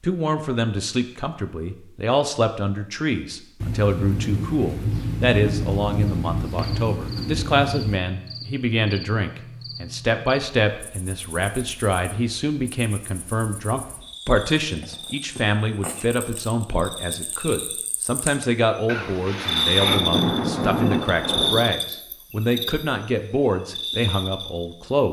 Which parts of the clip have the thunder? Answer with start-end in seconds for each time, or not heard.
3.6-8.0, 18.9-21.7.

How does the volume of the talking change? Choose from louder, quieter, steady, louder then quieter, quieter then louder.
steady.